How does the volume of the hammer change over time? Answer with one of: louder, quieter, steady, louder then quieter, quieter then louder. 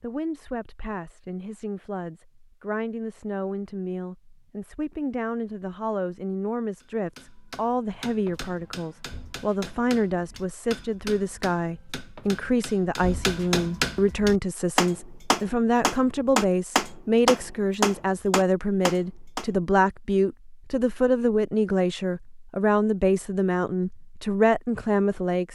louder.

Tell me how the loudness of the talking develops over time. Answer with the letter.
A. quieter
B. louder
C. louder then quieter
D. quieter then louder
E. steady
B.